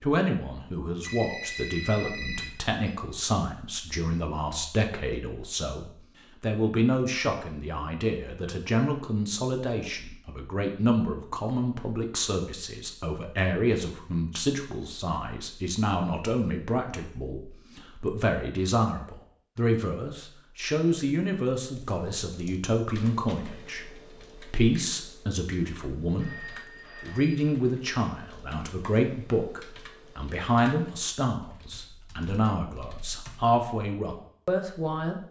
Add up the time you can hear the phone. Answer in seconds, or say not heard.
3 s.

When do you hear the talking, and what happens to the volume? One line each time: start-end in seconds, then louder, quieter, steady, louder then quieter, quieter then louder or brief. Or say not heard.
0.0-35.2 steady.